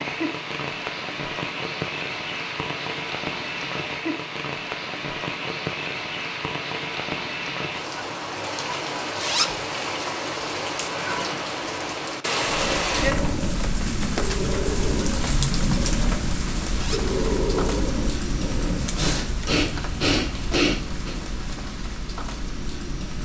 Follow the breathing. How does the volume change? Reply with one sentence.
The loudness of the breathing goes up.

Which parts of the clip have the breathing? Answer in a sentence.
The breathing can be heard from 12.4 to 21.1 s.